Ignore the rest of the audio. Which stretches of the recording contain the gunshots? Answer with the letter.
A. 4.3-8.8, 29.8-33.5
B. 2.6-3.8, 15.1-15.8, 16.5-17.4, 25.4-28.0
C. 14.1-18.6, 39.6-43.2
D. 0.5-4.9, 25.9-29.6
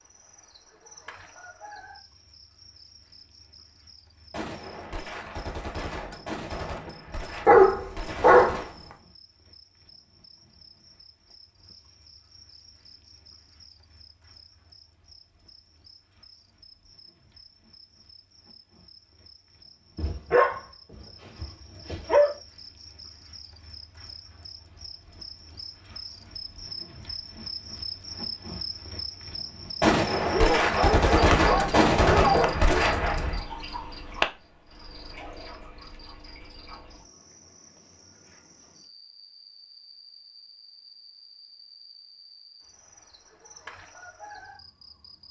A.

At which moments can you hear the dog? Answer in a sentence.
You can hear the dog from 7.5 to 8.6 s, from 19.9 to 20.6 s, from 21.4 to 22.3 s and from 30.3 to 32.9 s.